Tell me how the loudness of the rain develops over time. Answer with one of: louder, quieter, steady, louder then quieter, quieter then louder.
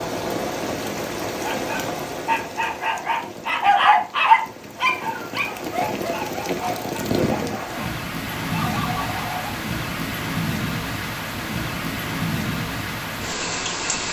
quieter then louder.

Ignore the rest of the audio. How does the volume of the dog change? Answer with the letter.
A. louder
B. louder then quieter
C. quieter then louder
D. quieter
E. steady
B.